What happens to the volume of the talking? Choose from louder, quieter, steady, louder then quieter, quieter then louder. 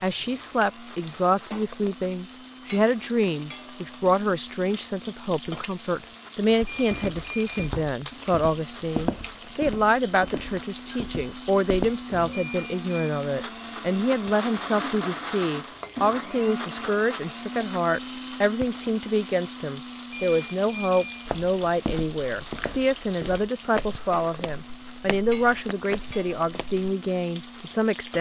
steady.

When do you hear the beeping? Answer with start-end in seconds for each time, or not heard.
6.7-7.7, 12.3-13.2, 20.1-21.3.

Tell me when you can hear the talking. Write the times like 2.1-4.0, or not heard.
0.0-28.1.